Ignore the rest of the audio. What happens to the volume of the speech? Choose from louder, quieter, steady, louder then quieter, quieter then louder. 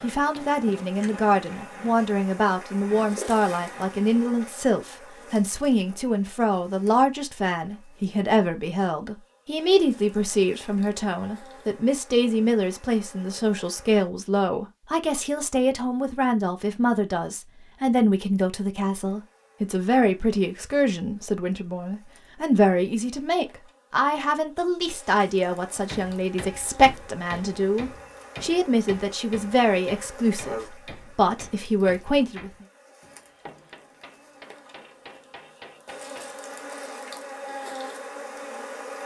steady.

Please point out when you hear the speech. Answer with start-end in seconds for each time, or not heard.
0.0-32.5.